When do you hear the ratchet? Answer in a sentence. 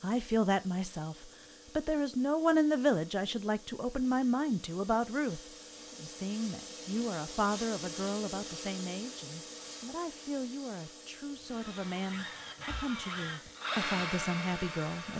You can't hear the ratchet here.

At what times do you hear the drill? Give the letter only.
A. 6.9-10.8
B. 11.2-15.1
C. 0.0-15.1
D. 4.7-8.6
B.